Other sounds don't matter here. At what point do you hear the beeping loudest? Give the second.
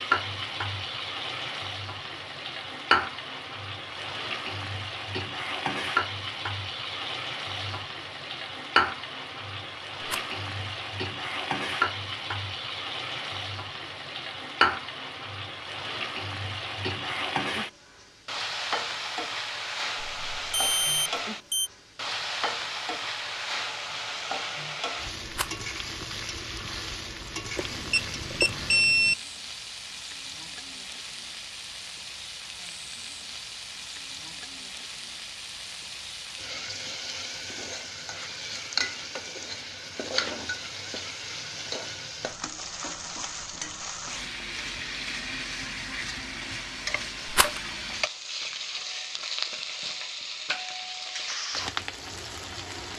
29 s.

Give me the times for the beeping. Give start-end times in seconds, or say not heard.
20.0-21.7, 27.6-29.1.